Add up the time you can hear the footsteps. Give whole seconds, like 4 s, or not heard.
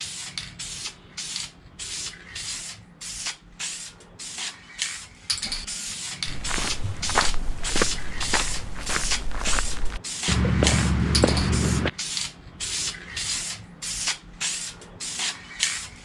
6 s.